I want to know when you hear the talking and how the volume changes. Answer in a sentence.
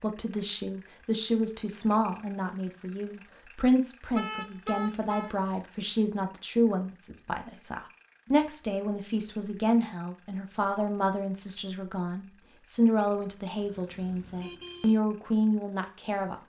You can hear the talking from 0.0 to 16.4 s, at a steady volume.